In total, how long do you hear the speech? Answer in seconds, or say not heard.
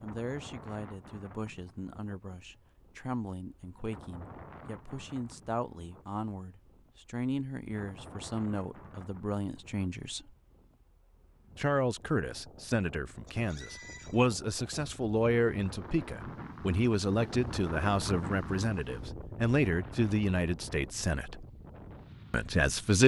21 s.